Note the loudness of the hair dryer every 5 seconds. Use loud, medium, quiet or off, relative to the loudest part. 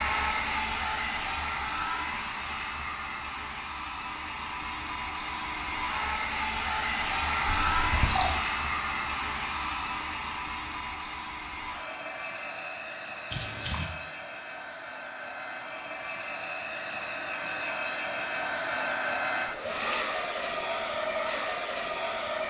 loud, loud, medium, loud, loud.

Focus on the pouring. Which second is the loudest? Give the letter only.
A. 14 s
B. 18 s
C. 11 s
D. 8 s
D.